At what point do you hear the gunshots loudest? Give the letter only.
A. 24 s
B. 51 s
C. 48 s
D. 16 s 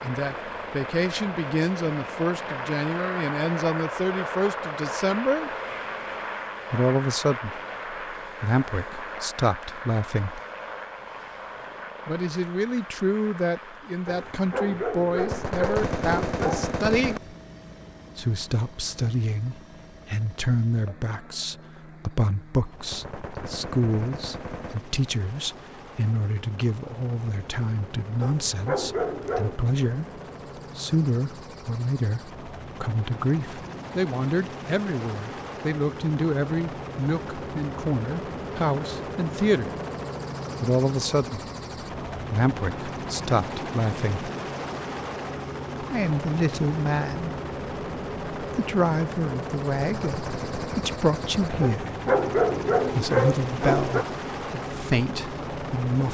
D.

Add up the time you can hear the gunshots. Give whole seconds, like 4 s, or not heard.
6 s.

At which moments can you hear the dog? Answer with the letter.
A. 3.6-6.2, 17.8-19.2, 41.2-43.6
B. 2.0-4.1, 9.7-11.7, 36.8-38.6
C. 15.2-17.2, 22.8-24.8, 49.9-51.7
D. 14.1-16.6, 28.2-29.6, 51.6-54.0
D.